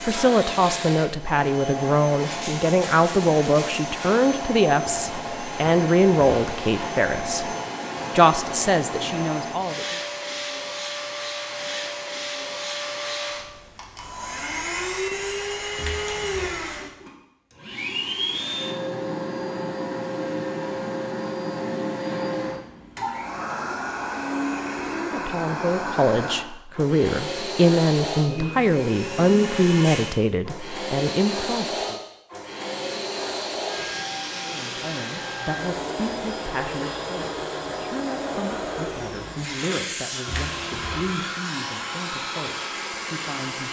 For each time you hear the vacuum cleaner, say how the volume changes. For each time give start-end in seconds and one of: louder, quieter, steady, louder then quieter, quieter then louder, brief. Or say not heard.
0.0-43.6 steady.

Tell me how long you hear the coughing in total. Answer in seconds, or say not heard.
2 s.